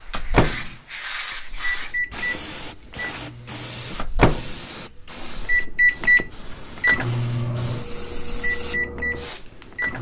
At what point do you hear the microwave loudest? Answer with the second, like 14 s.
6 s.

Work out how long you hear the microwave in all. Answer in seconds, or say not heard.
10 s.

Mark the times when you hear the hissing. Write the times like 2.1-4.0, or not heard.
0.0-9.9.